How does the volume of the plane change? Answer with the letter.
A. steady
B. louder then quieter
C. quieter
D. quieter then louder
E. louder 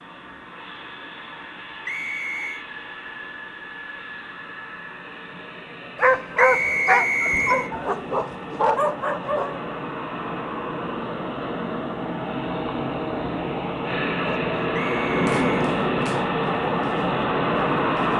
E.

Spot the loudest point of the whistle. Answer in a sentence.
The loudest moment of the whistle is at 7 seconds.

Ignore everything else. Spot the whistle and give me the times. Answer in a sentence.
You can hear the whistle from 1.9 to 2.6 s, from 6.3 to 7.7 s and from 14.7 to 15.7 s.